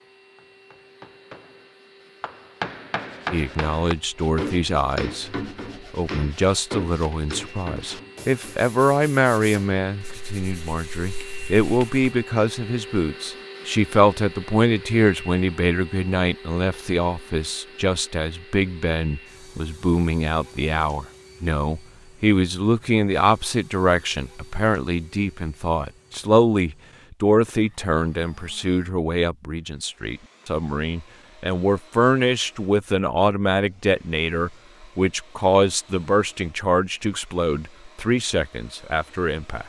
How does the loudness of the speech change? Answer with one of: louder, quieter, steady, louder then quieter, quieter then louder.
steady.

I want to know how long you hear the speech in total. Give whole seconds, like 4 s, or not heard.
36 s.